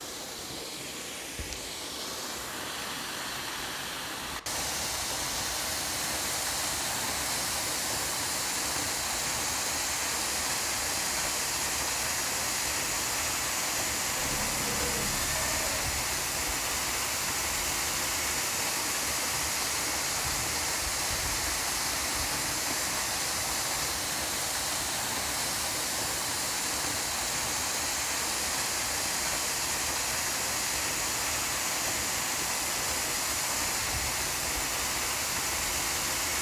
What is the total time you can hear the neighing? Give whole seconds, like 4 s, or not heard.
2 s.